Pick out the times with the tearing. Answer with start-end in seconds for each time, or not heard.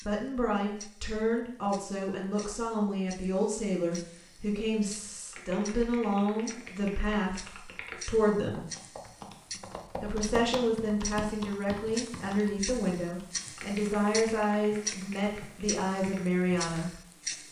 not heard.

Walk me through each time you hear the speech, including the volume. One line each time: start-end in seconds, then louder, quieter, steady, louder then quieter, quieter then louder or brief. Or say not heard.
0.1-8.7 steady
10.0-17.0 steady.